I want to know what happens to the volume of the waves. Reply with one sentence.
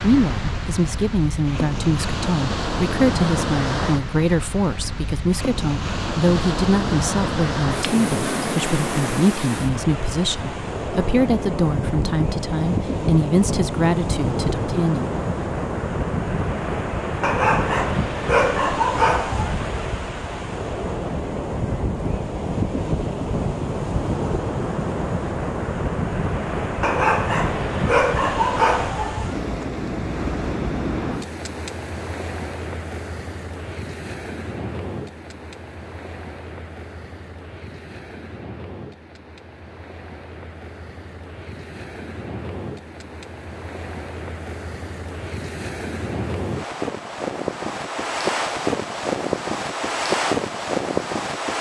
The volume of the waves goes down, then up.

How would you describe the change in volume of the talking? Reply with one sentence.
The loudness of the talking stays about the same.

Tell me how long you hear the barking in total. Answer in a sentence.
You can hear the barking for 5 seconds altogether.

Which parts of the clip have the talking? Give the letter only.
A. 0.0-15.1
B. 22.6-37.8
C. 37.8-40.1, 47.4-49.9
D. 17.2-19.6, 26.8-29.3
A.